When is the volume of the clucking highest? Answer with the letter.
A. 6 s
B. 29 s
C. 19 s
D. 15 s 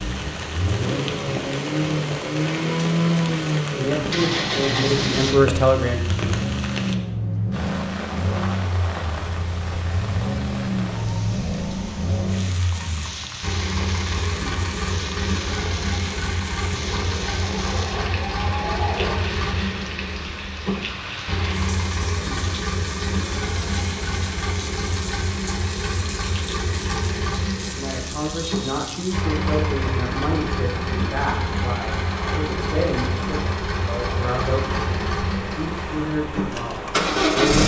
C.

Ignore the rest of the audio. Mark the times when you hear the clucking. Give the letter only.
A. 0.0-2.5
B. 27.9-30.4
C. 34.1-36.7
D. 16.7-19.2
D.